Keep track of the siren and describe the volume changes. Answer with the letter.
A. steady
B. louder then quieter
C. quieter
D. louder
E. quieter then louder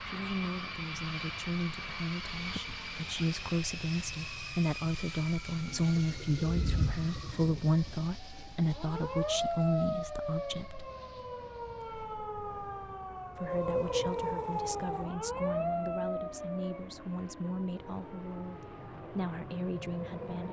B.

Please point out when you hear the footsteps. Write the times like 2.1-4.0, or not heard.
not heard.